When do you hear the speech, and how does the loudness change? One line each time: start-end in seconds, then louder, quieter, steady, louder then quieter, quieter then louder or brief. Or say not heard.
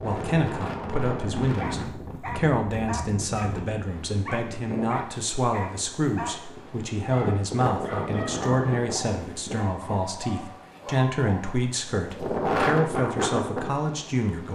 0.0-14.5 steady.